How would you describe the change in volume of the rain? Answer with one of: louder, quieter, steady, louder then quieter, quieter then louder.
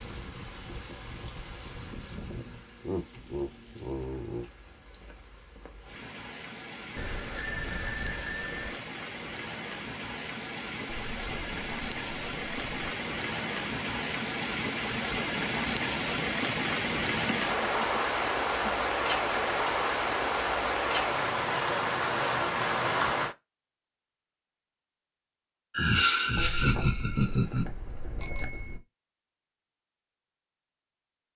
louder.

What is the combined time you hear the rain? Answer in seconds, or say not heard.
23 s.